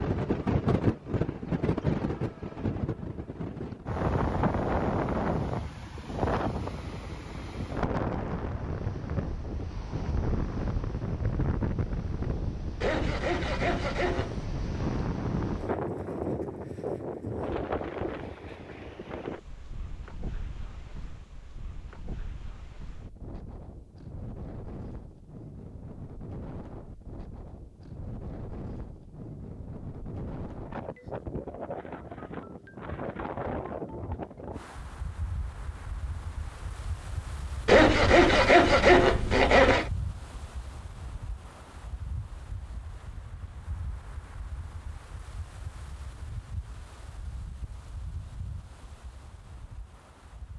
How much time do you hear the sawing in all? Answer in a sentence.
You can hear the sawing for 4 seconds altogether.